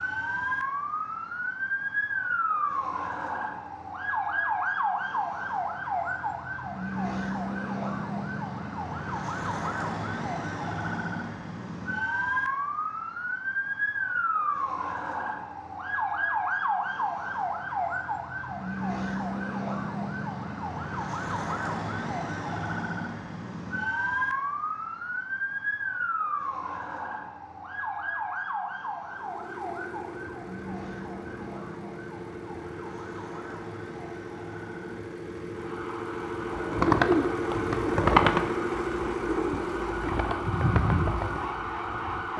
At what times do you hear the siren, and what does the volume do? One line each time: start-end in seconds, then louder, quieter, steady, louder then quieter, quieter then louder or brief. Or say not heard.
0.0-42.3 quieter.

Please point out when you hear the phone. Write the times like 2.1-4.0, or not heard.
not heard.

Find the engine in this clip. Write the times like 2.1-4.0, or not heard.
29.1-42.3.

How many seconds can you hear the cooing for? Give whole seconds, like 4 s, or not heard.
6 s.